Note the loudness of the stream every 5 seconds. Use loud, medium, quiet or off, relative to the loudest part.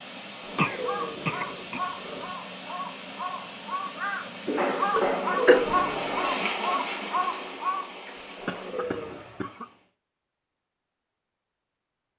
medium, loud, off.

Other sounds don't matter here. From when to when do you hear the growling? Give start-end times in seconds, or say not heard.
0.4-2.2, 5.1-6.2, 8.3-9.2.